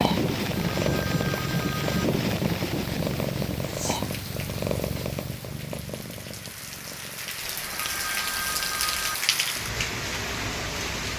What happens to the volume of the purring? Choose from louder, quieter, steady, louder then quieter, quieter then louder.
quieter.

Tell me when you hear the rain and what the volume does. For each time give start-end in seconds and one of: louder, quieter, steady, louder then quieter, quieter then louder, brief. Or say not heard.
0.0-11.1 quieter then louder.